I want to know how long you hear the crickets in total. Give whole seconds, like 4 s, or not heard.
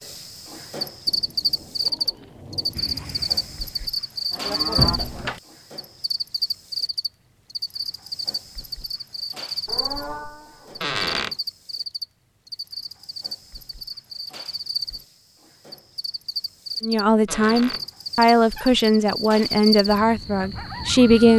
21 s.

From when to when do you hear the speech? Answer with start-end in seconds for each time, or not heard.
16.8-21.3.